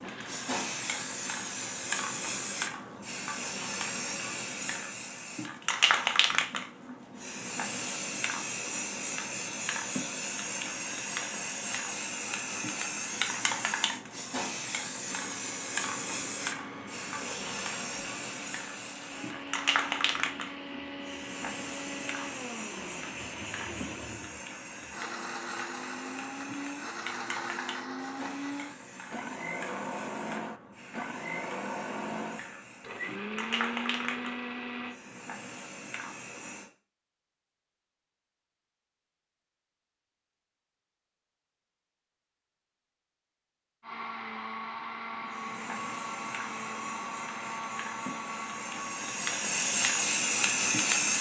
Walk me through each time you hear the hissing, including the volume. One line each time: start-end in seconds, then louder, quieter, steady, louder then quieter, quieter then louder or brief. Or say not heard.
0.0-36.7 quieter
45.2-51.1 louder.